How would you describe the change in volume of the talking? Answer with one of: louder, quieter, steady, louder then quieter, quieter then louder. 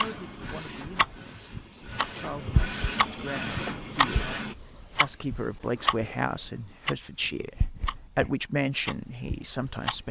louder.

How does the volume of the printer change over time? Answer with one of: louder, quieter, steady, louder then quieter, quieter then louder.
quieter then louder.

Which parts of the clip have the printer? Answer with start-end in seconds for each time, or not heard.
0.0-4.5.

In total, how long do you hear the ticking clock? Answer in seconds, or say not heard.
10 s.